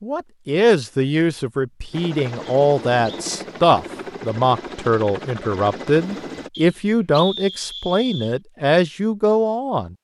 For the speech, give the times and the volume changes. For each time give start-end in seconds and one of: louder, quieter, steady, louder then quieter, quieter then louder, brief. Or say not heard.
0.0-9.9 steady.